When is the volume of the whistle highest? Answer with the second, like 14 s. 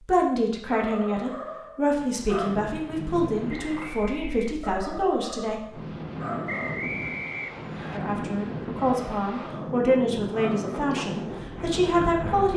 7 s.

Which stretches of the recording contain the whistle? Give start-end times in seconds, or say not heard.
3.7-4.6, 6.5-8.0.